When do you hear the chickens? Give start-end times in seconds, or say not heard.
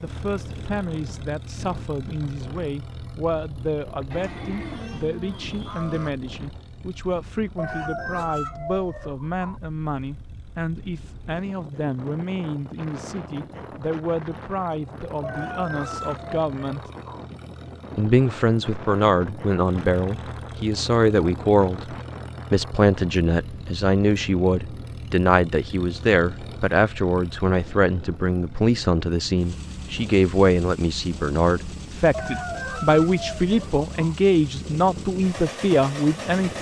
7.5-9.6, 15.2-17.2, 32.1-34.1.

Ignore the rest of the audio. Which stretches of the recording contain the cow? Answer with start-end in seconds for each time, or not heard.
4.1-6.1.